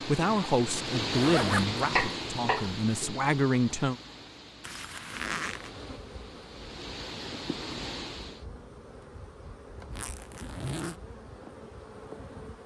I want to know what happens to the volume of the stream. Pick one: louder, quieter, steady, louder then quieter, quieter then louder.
quieter then louder.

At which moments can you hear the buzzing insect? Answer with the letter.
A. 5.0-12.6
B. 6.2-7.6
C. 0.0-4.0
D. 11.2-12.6
A.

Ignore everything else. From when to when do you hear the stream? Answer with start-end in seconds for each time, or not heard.
0.0-8.4.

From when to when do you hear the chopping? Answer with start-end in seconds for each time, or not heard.
1.8-3.1.